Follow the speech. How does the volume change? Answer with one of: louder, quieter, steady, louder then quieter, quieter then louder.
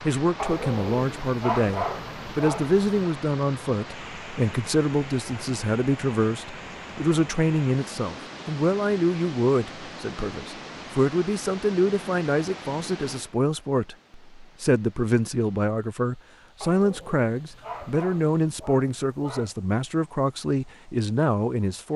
steady.